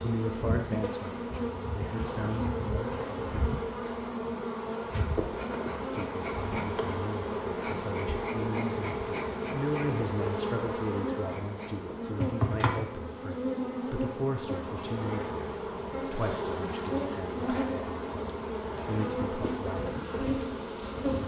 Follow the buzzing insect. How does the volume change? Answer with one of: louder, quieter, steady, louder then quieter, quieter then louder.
steady.